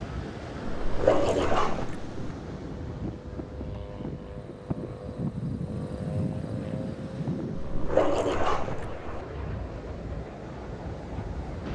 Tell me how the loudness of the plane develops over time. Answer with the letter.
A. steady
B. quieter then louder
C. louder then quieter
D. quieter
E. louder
C.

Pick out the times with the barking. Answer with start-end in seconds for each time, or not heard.
0.7-2.0, 7.5-9.1.